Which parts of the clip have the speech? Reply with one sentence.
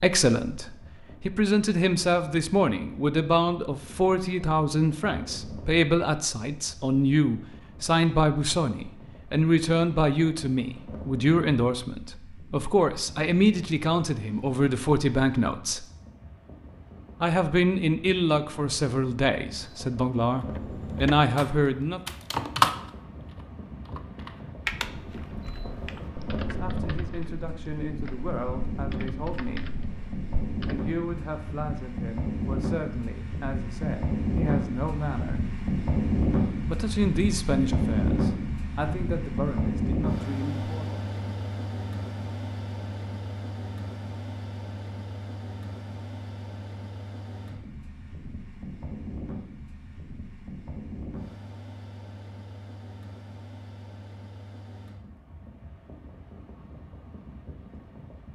The speech can be heard from 0.0 to 15.8 s, from 17.2 to 22.0 s, from 26.4 to 29.8 s, from 30.6 to 35.5 s and from 36.6 to 41.0 s.